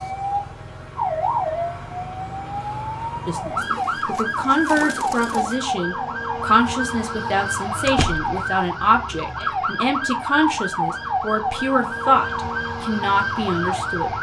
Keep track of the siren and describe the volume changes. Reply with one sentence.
The loudness of the siren stays about the same.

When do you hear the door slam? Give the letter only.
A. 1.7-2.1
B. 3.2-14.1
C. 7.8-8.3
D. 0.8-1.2
C.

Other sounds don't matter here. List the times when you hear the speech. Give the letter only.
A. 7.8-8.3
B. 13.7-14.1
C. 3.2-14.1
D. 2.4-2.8
C.